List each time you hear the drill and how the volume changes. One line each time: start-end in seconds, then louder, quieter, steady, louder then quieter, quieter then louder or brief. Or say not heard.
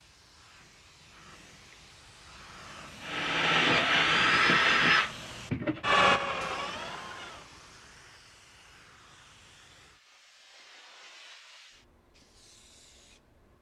3.0-7.5 quieter.